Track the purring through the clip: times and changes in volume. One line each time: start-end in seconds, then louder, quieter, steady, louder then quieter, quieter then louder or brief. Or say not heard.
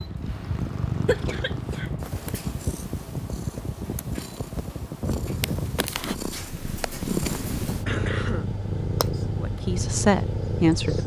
0.0-11.0 quieter then louder.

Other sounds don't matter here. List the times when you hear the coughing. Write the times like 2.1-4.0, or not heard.
1.1-2.0, 7.8-8.4.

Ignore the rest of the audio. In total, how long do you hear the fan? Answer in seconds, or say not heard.
11 s.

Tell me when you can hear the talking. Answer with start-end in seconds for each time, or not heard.
9.4-11.0.